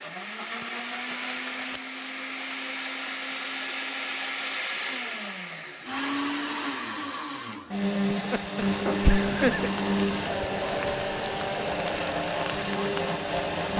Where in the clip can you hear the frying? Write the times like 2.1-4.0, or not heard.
8.6-13.7.